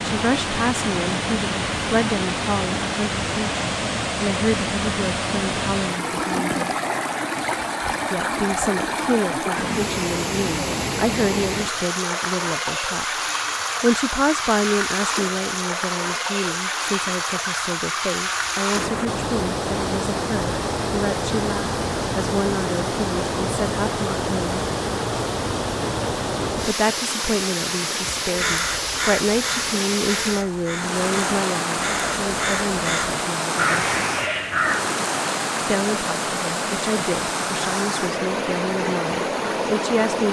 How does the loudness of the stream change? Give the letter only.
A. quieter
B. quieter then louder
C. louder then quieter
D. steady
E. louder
D.